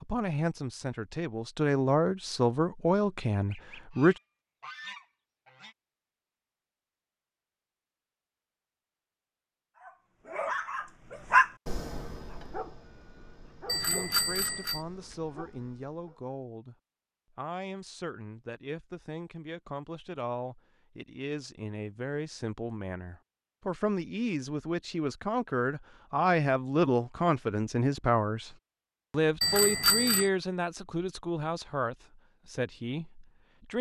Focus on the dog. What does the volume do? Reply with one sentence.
The loudness of the dog goes up, then down.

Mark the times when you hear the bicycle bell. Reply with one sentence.
The bicycle bell can be heard from 13.7 to 14.8 s and from 29.4 to 30.3 s.